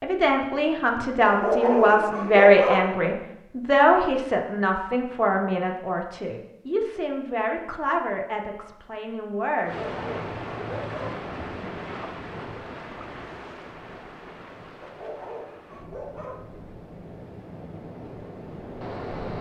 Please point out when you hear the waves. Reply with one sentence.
You can hear the waves from 9.7 to 19.3 s.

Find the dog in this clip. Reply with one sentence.
The dog can be heard from 1.2 to 2.9 s, from 9.7 to 11.2 s and from 14.8 to 16.4 s.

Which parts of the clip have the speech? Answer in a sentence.
The speech can be heard from 0.0 to 9.8 s.